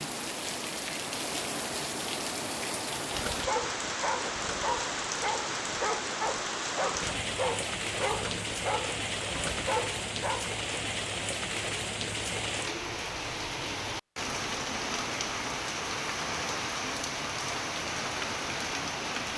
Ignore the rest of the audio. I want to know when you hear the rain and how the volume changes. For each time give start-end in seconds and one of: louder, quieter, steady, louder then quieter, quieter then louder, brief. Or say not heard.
0.0-19.3 steady.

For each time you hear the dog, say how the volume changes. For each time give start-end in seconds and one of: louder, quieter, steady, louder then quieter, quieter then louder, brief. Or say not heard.
3.0-10.6 steady.